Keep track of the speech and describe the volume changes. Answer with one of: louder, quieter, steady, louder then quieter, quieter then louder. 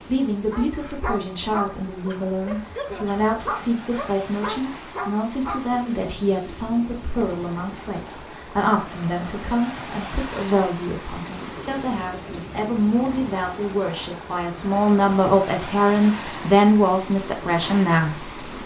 louder.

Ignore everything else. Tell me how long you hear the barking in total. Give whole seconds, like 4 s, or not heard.
5 s.